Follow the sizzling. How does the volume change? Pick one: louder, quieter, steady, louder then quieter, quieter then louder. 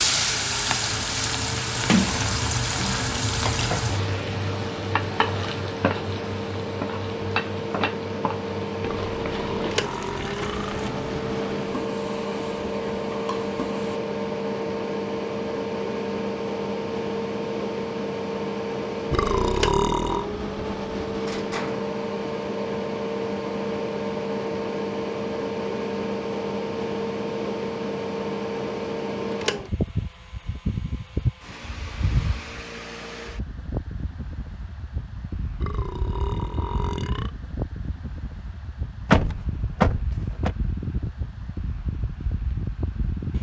quieter.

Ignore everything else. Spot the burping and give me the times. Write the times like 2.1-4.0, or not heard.
8.8-10.8, 19.1-20.3, 35.5-37.3.